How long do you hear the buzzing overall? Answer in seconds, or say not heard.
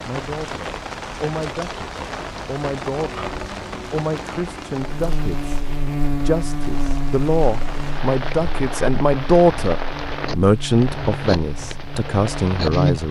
8 s.